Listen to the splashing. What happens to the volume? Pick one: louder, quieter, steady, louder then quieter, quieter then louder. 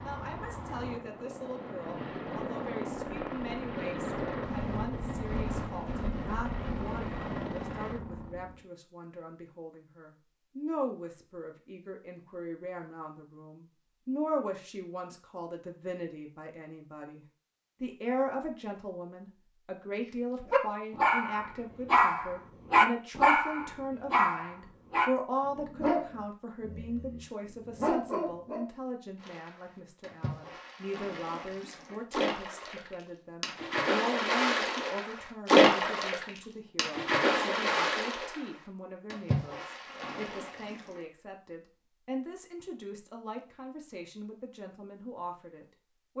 louder then quieter.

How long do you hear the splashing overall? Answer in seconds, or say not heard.
12 s.